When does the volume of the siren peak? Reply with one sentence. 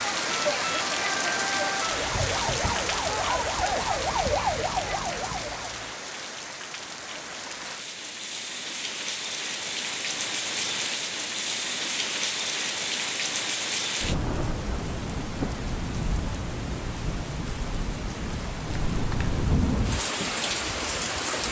The volume of the siren peaks at 4 seconds.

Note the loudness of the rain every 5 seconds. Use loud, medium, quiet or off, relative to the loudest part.
loud, medium, loud, loud, loud.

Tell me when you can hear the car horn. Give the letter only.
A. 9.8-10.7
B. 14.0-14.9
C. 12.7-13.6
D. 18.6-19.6
D.